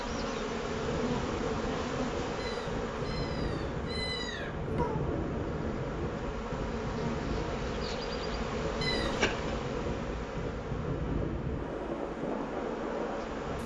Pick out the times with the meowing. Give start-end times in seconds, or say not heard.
2.4-5.0, 8.8-9.2.